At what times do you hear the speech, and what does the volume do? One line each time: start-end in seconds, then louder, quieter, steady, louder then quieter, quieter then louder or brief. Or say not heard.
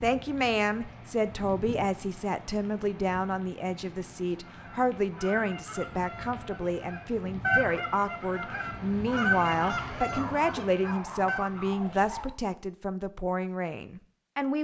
0.0-14.5 steady.